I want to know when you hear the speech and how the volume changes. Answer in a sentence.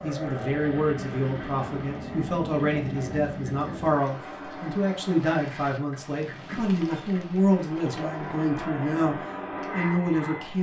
The speech can be heard from 0.0 to 10.5 s, at a steady volume.